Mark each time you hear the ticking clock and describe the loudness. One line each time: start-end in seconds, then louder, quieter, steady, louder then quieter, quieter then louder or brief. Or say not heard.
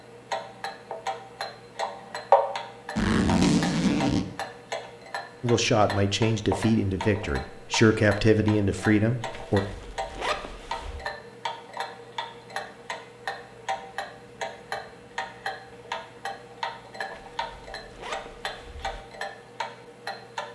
0.0-20.4 quieter.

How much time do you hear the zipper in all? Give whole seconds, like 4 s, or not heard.
5 s.